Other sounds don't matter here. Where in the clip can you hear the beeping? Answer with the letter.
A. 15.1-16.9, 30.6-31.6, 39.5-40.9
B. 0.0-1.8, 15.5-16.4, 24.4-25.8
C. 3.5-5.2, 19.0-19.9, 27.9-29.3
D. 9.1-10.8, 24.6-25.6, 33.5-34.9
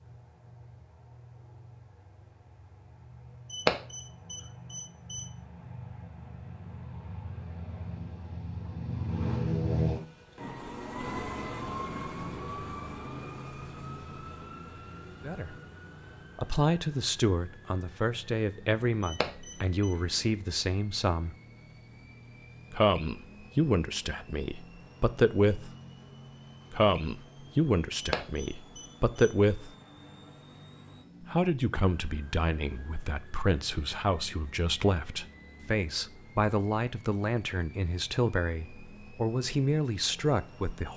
C.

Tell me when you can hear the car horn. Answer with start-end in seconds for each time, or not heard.
not heard.